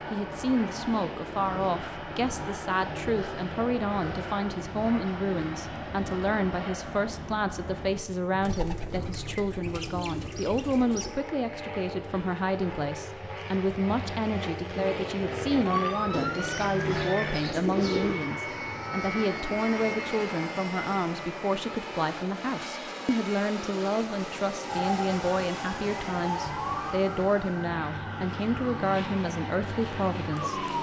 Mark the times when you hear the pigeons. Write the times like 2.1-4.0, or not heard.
8.4-11.2, 16.1-18.1.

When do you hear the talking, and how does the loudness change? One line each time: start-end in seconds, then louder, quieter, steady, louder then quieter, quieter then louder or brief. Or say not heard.
0.1-30.6 steady.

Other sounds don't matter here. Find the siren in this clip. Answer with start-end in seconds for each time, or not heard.
15.7-17.4, 24.6-30.7.